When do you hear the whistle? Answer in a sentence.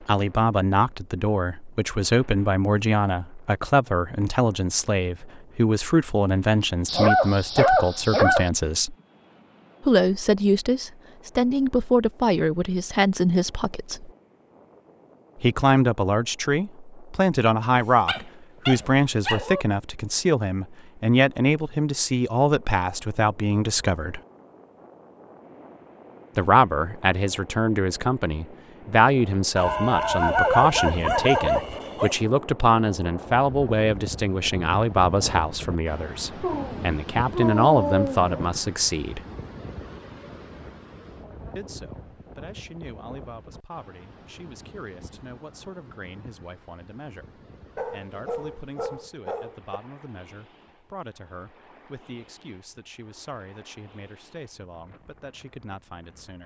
The whistle can't be heard in this clip.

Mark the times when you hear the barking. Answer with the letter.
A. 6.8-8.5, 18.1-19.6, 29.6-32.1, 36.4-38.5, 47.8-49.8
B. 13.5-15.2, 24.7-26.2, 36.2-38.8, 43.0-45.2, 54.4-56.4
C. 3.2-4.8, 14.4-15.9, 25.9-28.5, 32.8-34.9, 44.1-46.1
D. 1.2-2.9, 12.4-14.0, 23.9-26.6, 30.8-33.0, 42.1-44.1
A.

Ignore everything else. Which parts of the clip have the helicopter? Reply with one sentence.
The helicopter can't be heard in this clip.